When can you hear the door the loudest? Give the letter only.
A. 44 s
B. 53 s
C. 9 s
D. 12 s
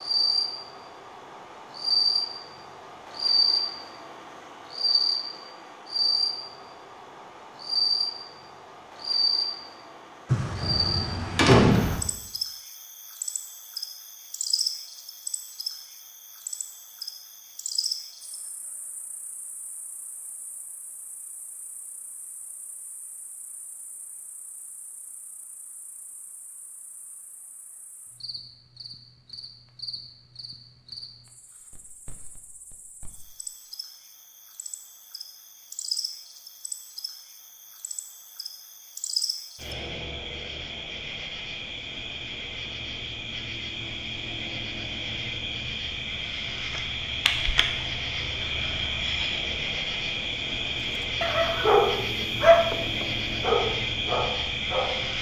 D.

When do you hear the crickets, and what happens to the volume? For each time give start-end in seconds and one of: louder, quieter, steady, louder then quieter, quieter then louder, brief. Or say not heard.
0.0-55.1 quieter then louder.